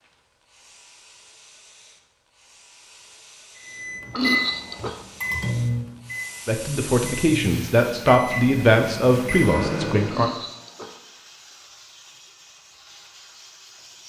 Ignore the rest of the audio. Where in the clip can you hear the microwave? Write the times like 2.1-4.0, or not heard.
3.5-10.3.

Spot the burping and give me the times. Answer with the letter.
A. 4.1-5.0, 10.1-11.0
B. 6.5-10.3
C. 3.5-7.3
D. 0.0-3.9
A.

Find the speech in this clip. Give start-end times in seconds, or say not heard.
6.5-10.3.